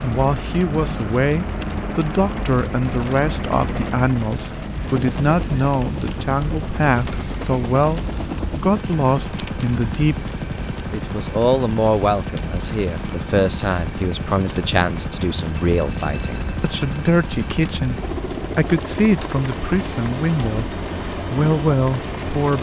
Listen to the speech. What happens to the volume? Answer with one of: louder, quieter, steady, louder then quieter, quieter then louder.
steady.